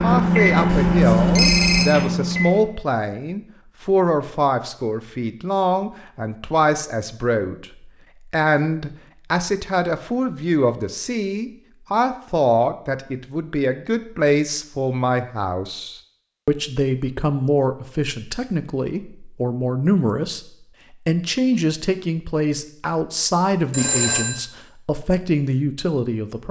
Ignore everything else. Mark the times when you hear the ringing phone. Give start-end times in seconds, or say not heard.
0.7-1.9, 23.7-24.4.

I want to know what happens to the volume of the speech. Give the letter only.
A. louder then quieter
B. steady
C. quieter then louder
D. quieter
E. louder
B.